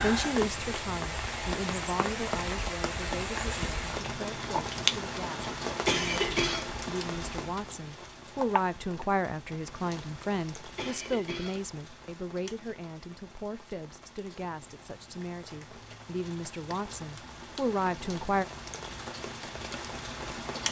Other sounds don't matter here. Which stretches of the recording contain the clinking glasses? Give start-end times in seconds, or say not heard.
not heard.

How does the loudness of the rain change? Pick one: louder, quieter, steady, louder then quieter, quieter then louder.
quieter then louder.